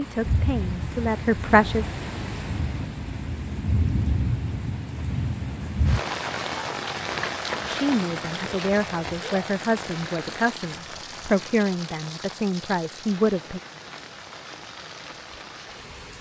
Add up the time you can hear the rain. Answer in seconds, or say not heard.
16 s.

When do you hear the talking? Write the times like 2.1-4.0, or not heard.
0.0-1.9, 7.7-13.6.